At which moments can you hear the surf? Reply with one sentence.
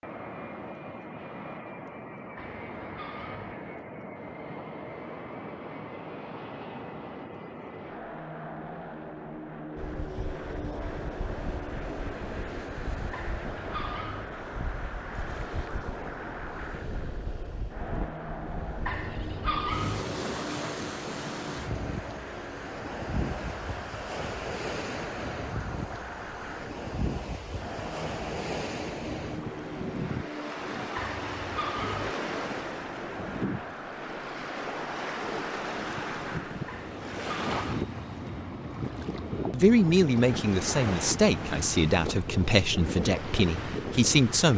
The surf can be heard from 9.8 to 44.5 s.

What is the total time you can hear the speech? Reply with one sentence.
The speech can be heard for 5 seconds in total.